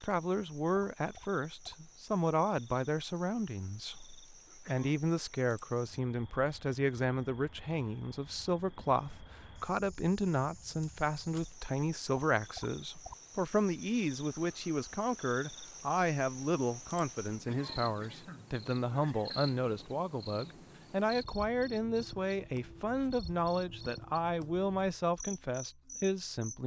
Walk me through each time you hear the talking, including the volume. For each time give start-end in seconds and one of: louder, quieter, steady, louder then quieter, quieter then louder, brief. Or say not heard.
0.0-26.6 steady.